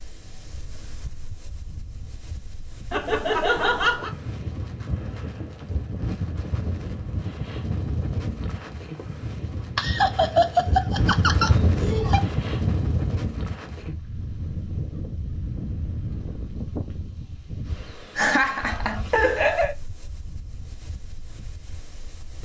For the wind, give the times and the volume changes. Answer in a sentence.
You can hear the wind from 0.0 to 22.3 s, getting louder then quieter.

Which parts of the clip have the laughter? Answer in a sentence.
You can hear the laughter from 2.9 to 4.2 s, from 9.8 to 12.2 s and from 18.1 to 19.8 s.